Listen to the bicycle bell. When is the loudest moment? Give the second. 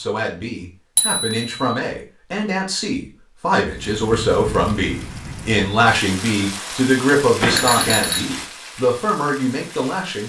8 s.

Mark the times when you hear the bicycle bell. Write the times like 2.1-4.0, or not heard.
0.9-1.6, 7.4-8.2.